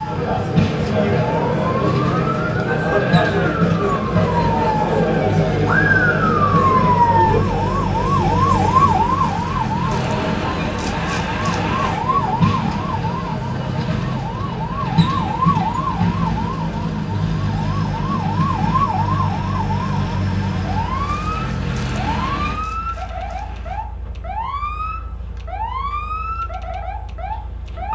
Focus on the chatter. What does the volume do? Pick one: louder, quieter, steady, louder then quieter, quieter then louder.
quieter.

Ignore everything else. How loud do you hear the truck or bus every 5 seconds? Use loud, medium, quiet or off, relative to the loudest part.
loud, loud, loud, loud, medium, quiet.